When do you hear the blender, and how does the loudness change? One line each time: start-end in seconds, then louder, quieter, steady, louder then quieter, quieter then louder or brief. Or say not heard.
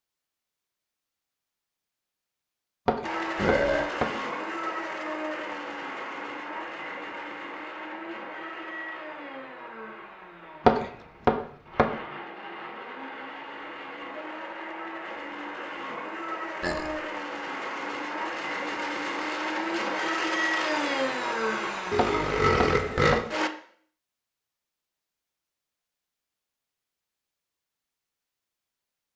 3.0-23.5 quieter then louder.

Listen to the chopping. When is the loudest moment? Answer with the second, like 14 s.
11 s.